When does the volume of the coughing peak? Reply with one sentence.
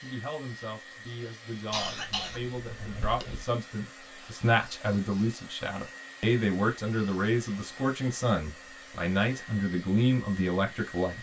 The volume of the coughing peaks at 2 seconds.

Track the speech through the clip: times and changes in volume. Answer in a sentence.
You can hear the speech from 0.0 to 11.1 s, getting louder.